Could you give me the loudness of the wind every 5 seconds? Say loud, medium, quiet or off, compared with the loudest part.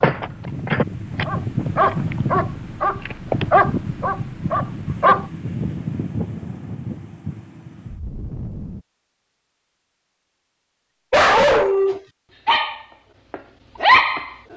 loud, loud, off.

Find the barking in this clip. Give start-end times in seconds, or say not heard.
0.0-5.2, 11.1-14.3.